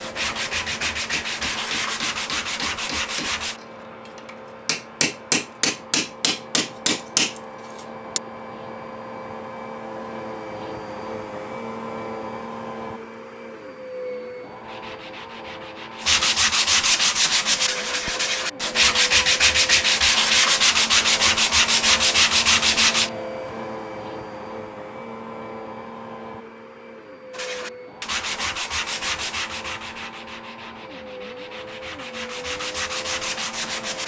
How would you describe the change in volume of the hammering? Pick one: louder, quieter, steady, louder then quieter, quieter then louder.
louder.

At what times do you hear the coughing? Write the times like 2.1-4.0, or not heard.
not heard.